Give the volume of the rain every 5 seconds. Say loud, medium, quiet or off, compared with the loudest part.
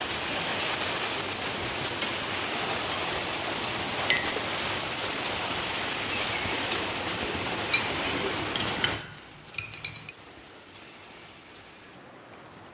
loud, loud, quiet.